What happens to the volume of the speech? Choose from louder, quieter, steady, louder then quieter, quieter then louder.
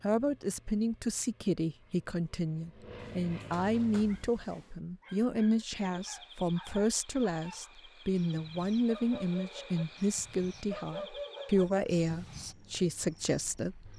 steady.